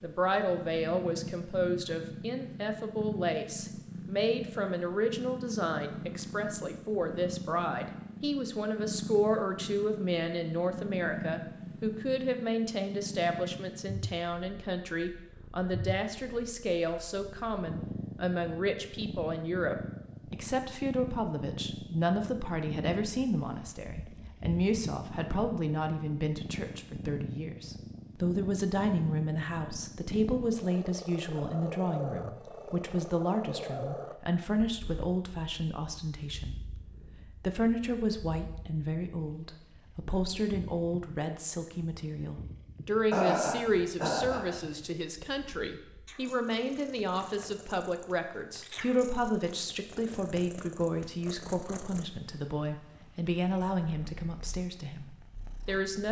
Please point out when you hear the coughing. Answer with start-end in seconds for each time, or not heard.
43.1-44.5.